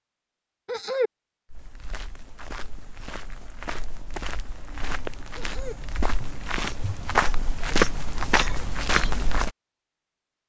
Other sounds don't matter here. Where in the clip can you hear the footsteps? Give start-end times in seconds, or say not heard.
1.5-9.5.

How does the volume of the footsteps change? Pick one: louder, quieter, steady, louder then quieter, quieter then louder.
louder.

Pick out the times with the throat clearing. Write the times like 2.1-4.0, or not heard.
0.7-1.1, 5.3-5.8.